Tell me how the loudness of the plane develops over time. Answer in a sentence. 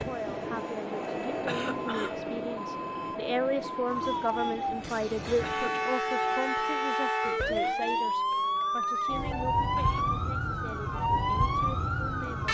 The volume of the plane goes down.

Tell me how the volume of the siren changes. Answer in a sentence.
The volume of the siren goes up.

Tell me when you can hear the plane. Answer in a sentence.
The plane can be heard from 0.0 to 6.8 s.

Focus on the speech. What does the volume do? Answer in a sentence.
The loudness of the speech goes up, then down.